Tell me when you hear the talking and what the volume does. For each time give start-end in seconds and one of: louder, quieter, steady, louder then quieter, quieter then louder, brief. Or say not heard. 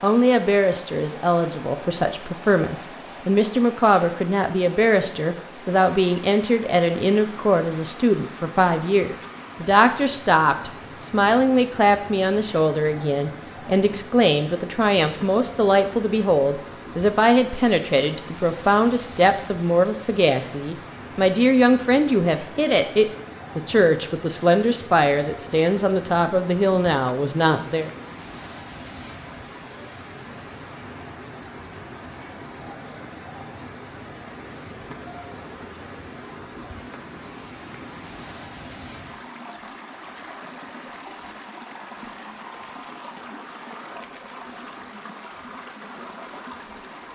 0.0-27.9 steady.